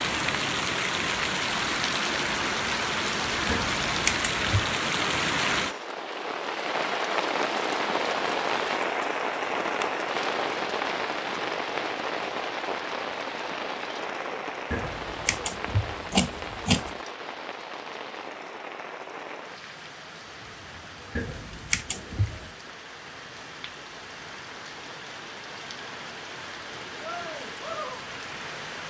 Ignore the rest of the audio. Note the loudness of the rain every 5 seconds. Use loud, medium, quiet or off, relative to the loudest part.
loud, loud, loud, medium, quiet, medium.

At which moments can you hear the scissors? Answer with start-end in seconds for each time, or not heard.
3.5-4.8, 14.7-17.0, 21.1-22.5.